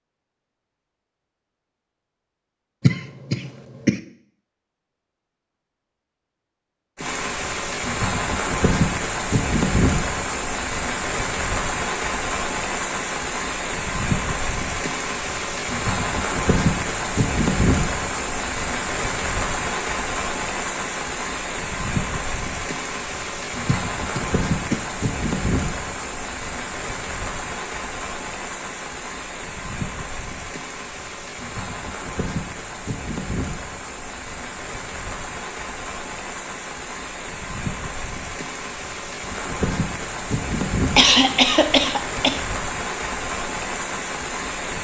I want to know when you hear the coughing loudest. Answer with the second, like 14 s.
41 s.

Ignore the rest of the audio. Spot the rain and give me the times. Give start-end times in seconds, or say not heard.
7.0-44.7.